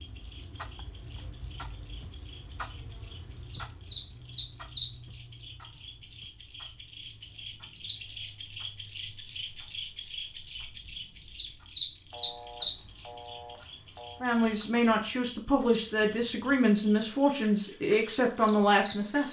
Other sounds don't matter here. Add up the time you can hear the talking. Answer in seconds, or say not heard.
5 s.